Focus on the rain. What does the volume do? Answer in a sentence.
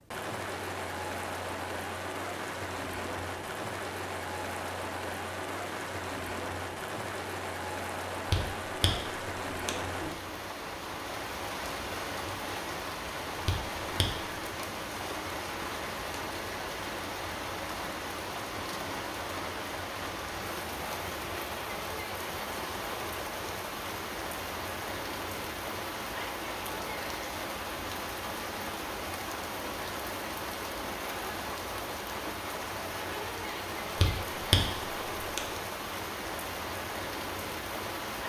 The loudness of the rain stays about the same.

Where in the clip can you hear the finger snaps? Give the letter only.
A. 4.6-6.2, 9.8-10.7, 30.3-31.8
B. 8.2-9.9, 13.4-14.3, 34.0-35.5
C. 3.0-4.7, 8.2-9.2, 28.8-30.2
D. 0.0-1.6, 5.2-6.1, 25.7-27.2
B.